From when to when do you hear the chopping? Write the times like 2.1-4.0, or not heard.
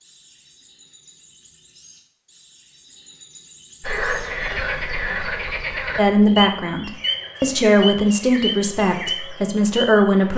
not heard.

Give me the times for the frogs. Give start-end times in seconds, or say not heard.
3.8-10.2.